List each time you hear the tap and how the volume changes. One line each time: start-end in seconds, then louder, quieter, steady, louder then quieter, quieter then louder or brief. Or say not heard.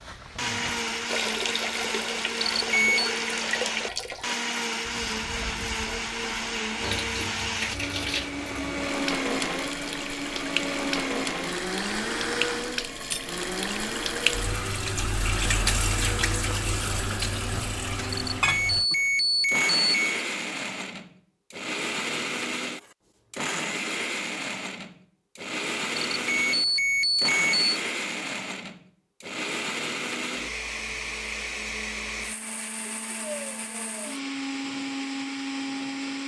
0.0-18.9 quieter then louder.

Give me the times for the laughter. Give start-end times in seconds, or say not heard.
not heard.